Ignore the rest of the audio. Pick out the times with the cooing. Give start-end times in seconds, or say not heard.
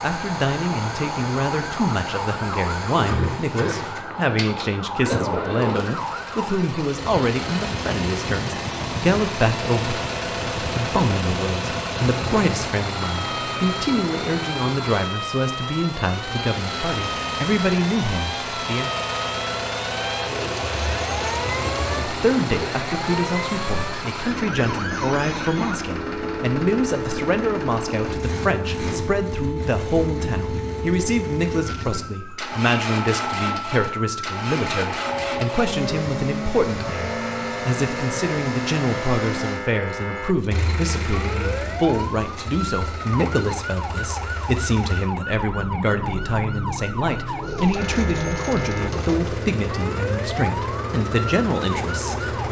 20.2-22.8, 47.4-49.5.